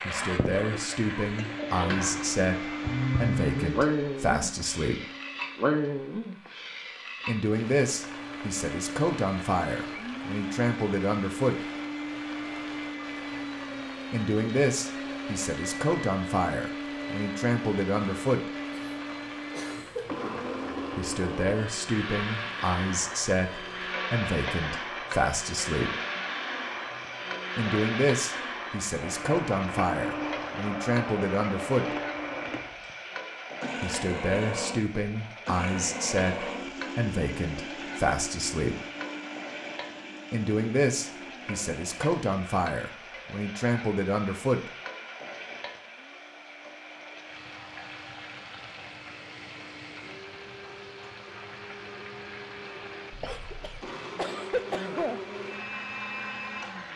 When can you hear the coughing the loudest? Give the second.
55 s.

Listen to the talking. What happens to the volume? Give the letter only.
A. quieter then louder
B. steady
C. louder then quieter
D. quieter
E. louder
B.